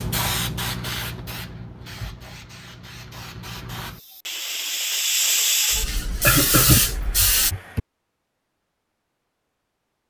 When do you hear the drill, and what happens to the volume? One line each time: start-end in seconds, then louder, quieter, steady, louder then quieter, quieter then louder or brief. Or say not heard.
not heard.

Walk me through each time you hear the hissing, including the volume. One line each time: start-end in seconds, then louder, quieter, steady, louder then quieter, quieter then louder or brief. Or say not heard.
0.0-7.5 quieter then louder.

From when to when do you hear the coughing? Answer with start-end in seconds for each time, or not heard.
6.2-7.8.